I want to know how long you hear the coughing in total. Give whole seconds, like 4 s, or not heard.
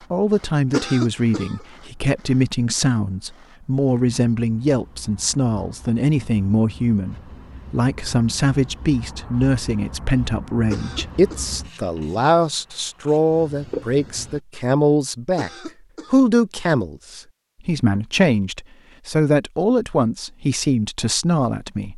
3 s.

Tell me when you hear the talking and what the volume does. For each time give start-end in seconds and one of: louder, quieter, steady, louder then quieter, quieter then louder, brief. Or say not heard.
0.1-21.9 steady.